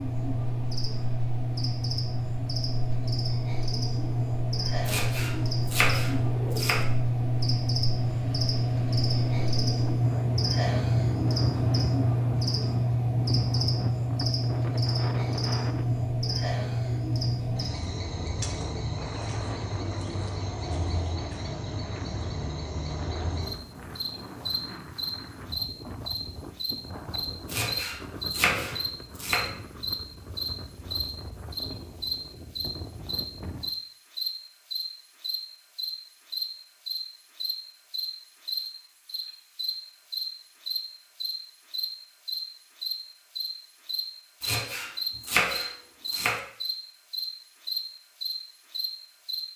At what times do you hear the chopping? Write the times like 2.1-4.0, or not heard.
4.8-6.8, 27.4-29.5, 44.4-46.4.